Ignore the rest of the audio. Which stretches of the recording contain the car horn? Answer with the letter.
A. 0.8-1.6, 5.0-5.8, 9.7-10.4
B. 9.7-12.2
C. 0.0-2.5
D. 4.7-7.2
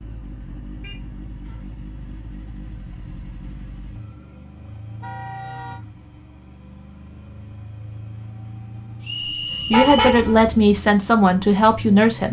A.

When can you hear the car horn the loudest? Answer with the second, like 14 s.
10 s.